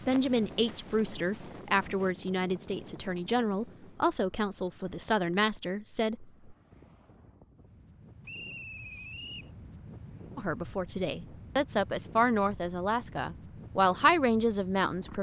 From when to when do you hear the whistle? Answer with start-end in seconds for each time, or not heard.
8.2-9.5.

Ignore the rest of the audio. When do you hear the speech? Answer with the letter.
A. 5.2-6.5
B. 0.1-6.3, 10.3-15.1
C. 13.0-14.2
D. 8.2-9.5
B.